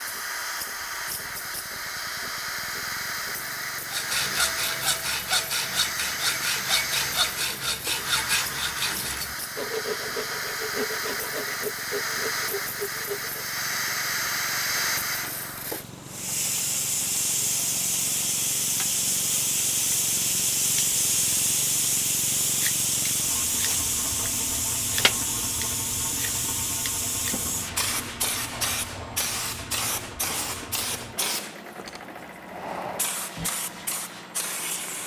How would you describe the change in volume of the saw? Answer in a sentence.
The volume of the saw goes down.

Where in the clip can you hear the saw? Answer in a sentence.
The saw can be heard from 3.9 to 13.4 s.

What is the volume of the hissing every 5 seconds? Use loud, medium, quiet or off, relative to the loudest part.
medium, medium, loud, loud, loud, loud, medium.